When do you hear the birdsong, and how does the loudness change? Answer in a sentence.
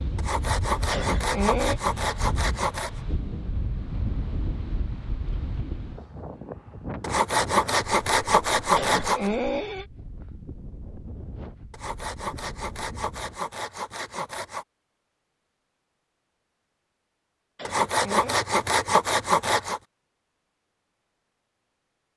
The birdsong can't be heard in this clip.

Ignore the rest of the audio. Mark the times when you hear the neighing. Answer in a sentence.
The neighing can be heard from 0.9 to 1.8 s, from 8.8 to 9.8 s and from 17.6 to 18.4 s.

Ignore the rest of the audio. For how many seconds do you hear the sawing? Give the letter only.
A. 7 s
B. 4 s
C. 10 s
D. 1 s
C.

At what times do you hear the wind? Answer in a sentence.
The wind can be heard from 0.0 to 13.5 s.